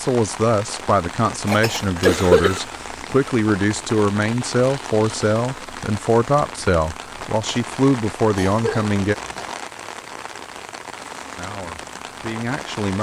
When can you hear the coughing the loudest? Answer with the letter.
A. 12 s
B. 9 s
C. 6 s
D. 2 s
D.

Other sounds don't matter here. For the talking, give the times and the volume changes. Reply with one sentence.
You can hear the talking from 0.0 to 9.2 s, at a steady volume; and briefly from 11.3 to 12.9 s.